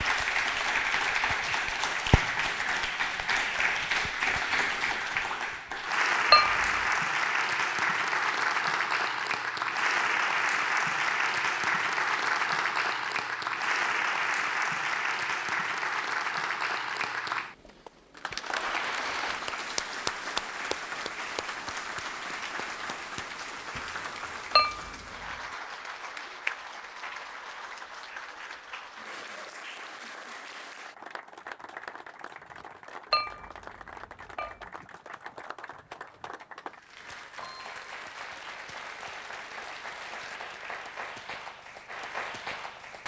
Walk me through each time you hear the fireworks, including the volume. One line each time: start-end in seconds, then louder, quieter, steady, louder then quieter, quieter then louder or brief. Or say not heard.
not heard.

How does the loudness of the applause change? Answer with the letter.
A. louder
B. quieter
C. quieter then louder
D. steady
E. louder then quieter
B.